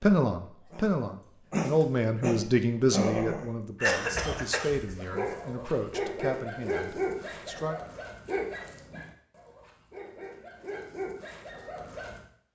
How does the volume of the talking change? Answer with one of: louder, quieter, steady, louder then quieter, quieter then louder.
quieter.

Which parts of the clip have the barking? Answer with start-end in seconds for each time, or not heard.
0.7-12.2.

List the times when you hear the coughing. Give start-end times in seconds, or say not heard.
3.8-4.8.